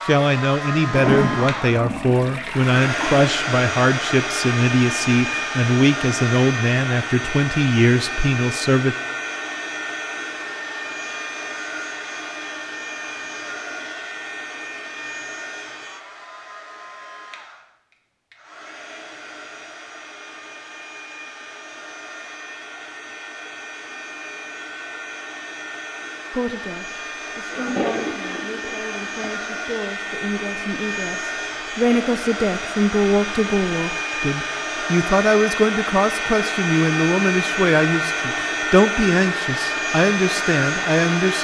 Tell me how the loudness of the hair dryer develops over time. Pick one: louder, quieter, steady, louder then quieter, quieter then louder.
quieter then louder.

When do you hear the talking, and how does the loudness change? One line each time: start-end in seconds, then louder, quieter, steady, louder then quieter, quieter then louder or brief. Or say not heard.
0.1-8.9 steady
26.3-41.3 louder.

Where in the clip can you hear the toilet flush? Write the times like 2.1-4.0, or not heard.
0.9-3.1, 27.5-29.3.